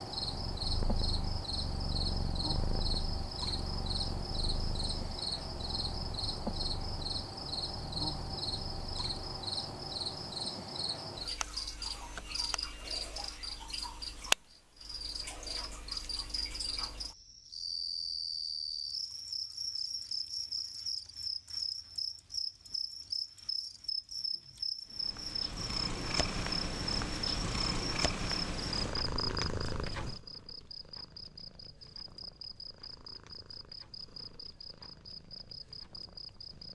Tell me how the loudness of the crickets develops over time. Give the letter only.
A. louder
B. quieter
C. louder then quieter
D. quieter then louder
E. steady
B.